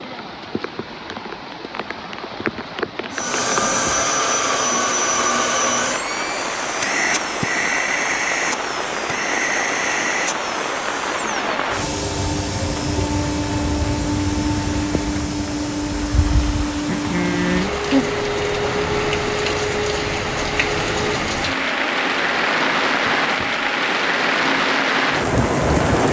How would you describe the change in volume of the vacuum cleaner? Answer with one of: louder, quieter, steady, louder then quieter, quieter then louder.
quieter.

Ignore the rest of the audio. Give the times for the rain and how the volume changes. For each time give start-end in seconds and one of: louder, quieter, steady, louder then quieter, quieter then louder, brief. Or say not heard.
0.0-26.0 louder.